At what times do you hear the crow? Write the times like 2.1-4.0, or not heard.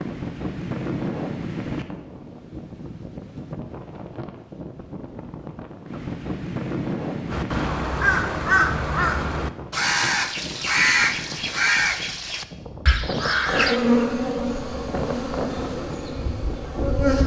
7.3-13.8.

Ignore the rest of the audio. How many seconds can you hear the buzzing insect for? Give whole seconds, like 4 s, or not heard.
4 s.